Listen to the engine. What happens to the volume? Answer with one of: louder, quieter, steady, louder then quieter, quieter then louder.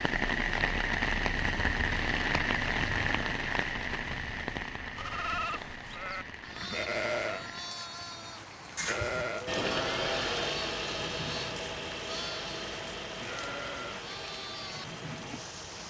quieter.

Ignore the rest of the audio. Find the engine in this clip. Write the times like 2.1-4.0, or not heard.
9.4-15.8.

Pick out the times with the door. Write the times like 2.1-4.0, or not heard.
8.8-9.3.